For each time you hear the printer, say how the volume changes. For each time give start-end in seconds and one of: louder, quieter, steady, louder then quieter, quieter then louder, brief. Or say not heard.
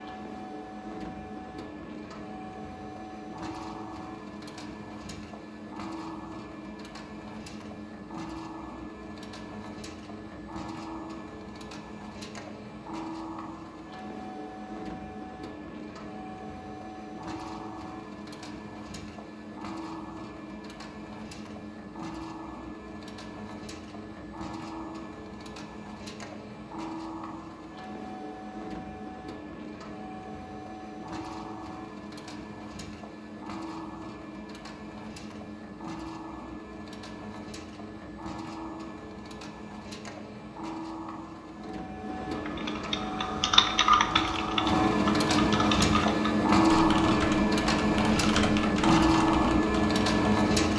0.0-50.7 louder.